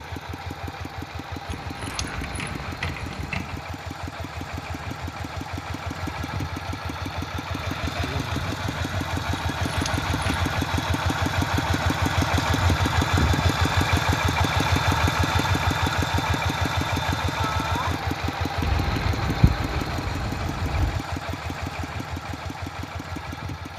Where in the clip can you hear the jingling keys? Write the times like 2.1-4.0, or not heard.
1.5-3.6, 9.3-10.5, 18.6-21.1.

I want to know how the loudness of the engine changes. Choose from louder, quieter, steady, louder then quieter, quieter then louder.
louder then quieter.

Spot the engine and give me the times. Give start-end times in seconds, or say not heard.
0.0-23.7.